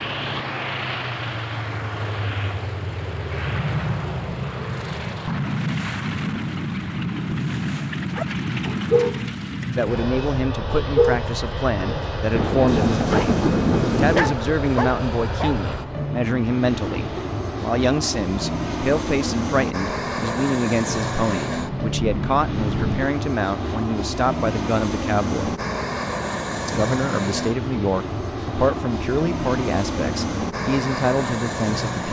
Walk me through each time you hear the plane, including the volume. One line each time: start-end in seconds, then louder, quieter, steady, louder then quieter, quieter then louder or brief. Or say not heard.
0.0-32.0 steady.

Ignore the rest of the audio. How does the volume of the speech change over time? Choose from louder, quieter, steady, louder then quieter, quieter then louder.
steady.